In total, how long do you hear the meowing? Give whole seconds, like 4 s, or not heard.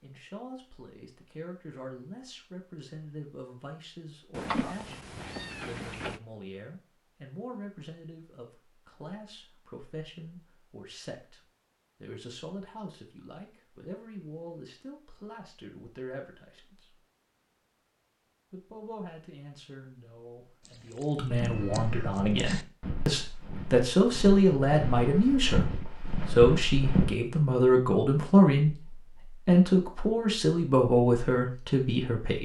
4 s.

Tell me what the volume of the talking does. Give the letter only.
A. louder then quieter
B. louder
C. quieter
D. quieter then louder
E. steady
B.